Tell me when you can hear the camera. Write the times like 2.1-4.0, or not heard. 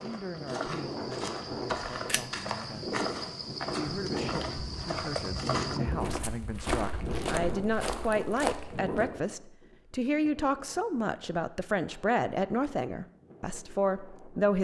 2.0-2.9.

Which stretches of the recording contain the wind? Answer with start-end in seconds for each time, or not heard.
0.0-14.6.